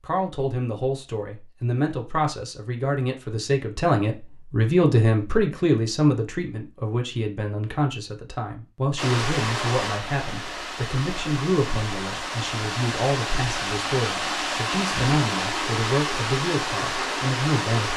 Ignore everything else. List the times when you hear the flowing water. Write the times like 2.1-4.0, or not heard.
8.9-17.9.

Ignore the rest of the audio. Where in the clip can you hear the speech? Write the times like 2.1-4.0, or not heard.
0.0-17.9.